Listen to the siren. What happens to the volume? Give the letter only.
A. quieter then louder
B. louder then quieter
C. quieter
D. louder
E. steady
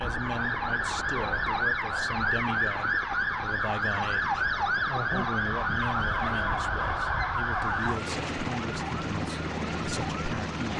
C.